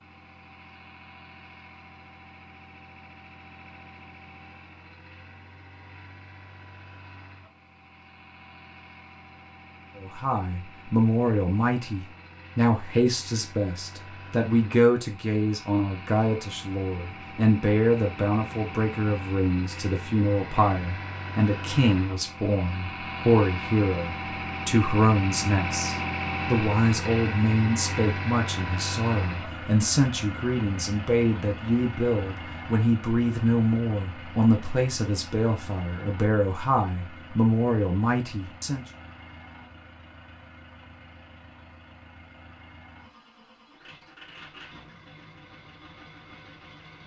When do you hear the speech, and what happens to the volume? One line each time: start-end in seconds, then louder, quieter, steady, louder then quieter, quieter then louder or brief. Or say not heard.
9.9-38.9 steady.